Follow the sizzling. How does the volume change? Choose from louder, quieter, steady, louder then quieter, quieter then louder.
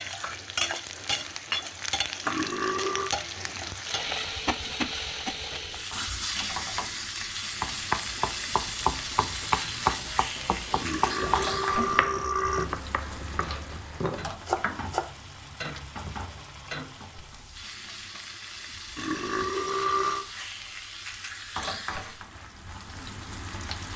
quieter.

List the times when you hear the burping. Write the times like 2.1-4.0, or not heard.
2.2-3.1, 10.8-12.7, 18.9-20.2.